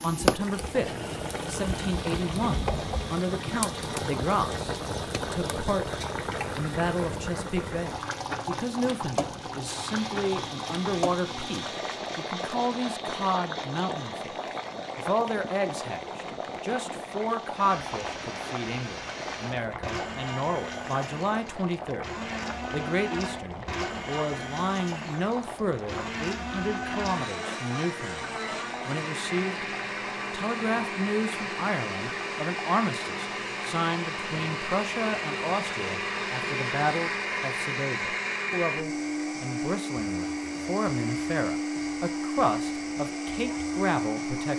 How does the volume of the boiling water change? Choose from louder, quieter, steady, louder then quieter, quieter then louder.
quieter.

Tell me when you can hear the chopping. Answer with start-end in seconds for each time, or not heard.
not heard.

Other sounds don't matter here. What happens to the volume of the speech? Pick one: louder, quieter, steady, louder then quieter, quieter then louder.
steady.